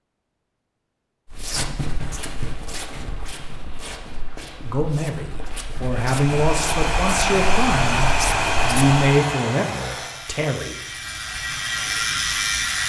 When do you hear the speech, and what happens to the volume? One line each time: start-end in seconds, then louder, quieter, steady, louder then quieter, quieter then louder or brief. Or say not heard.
4.6-10.8 louder then quieter.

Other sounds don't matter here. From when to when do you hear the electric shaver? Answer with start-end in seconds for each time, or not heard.
9.7-12.8.